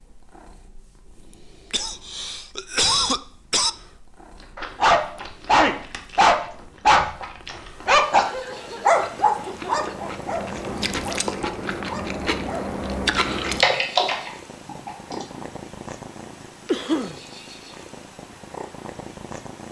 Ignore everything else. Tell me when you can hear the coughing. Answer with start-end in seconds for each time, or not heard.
1.7-3.7, 8.2-9.8, 16.6-17.2.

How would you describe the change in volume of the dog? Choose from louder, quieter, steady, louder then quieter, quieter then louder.
quieter.